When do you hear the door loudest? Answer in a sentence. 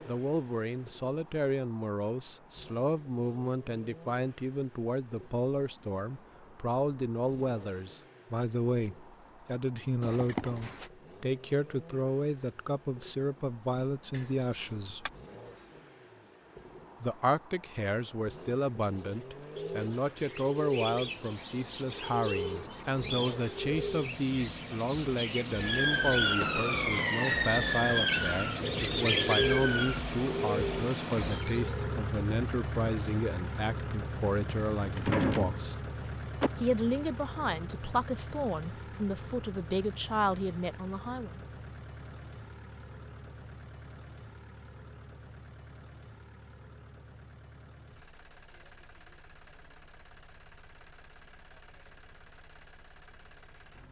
The loudest moment of the door is at 35 seconds.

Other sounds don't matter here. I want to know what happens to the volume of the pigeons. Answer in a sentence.
The volume of the pigeons goes up.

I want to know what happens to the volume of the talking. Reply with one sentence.
The loudness of the talking stays about the same.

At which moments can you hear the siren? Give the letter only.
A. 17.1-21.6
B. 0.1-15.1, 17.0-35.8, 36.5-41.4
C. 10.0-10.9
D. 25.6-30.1
D.